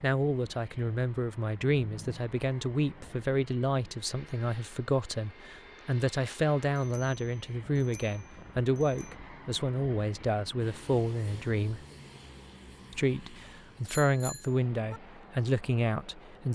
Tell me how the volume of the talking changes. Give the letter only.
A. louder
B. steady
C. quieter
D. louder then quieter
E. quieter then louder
B.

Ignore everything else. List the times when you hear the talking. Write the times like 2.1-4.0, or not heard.
0.0-11.8, 12.9-16.5.